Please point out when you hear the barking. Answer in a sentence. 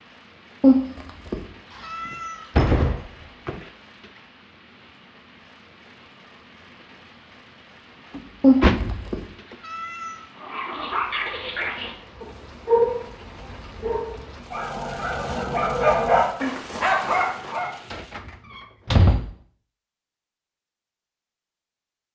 The barking can be heard from 10.3 to 17.7 s.